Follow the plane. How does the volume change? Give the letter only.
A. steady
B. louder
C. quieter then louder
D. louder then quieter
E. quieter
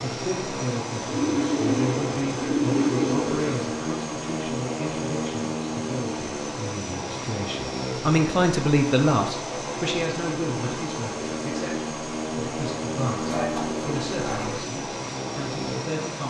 A.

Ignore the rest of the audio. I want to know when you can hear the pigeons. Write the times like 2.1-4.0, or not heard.
1.1-3.6, 13.2-14.7.